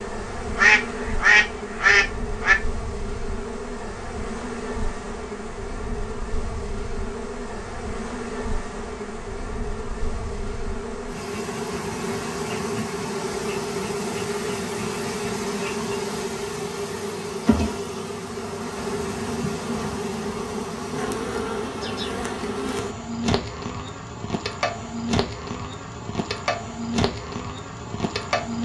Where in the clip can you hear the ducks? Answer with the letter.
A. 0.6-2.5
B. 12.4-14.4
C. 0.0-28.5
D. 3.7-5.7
A.